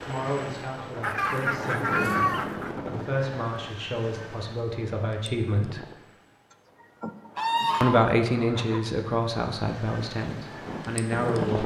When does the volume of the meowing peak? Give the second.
2 s.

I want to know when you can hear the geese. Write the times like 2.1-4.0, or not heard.
1.0-2.7, 7.3-8.8.